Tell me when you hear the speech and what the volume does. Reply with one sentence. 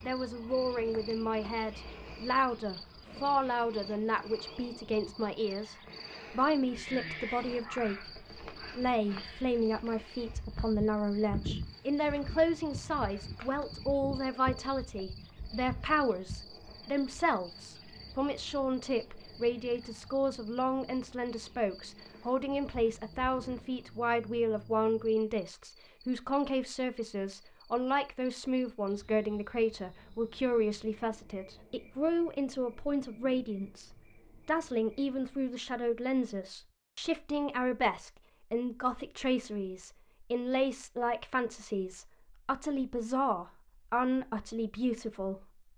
The speech can be heard from 0.0 to 45.5 s, at a steady volume.